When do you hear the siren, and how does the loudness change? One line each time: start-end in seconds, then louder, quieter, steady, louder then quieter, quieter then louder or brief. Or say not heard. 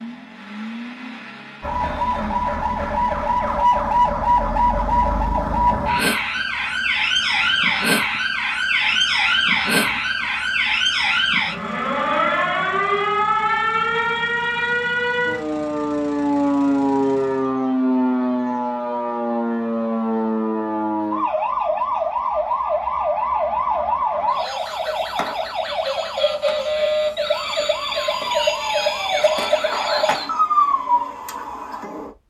1.6-32.1 steady.